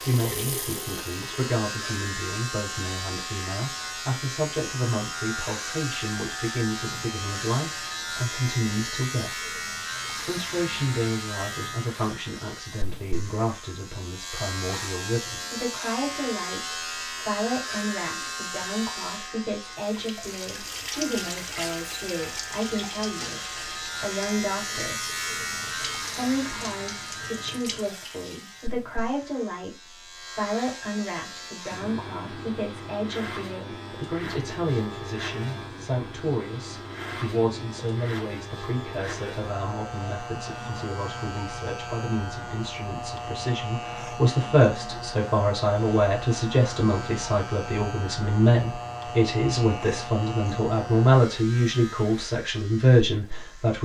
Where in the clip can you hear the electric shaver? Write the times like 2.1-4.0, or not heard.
0.0-53.8.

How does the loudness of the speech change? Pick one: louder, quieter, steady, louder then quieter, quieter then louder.
louder.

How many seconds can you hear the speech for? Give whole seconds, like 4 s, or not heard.
52 s.